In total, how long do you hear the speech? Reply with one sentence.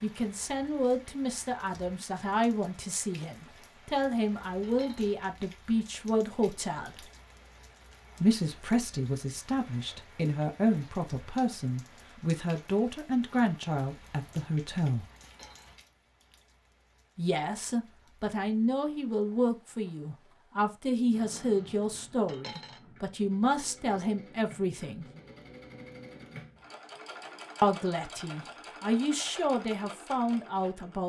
You can hear the speech for 25 seconds altogether.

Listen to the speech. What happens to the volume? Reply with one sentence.
The volume of the speech stays about the same.